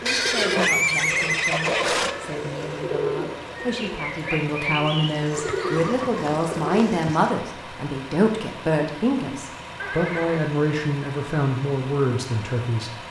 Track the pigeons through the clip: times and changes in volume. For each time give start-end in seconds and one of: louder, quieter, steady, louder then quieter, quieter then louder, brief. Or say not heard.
0.0-7.3 steady.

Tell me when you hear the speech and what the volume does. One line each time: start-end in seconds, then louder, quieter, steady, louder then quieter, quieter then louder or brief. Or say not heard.
0.0-12.9 louder.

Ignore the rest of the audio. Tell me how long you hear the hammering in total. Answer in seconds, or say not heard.
not heard.